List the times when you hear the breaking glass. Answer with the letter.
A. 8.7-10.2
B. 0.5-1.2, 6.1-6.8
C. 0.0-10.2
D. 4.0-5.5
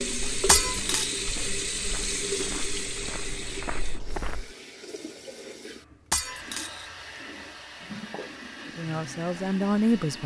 B.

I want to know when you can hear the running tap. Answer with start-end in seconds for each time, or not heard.
0.0-10.2.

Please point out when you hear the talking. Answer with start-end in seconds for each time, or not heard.
8.7-10.2.